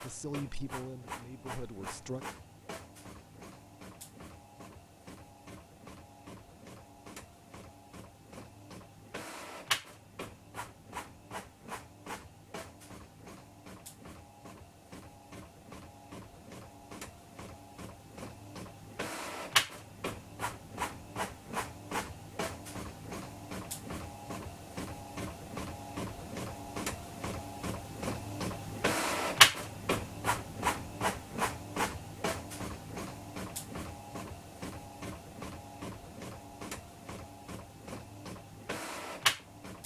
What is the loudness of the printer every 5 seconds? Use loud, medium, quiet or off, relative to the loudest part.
quiet, quiet, quiet, medium, medium, loud, medium, medium.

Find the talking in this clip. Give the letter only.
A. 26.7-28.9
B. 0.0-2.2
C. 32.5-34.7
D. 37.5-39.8
B.